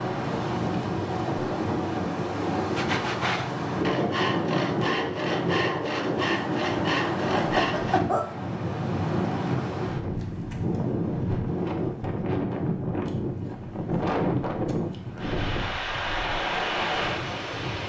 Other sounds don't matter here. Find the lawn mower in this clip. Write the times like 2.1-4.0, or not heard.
not heard.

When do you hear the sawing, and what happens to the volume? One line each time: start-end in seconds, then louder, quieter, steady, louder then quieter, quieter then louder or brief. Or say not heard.
2.8-8.0 steady.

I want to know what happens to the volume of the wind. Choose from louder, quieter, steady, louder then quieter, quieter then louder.
steady.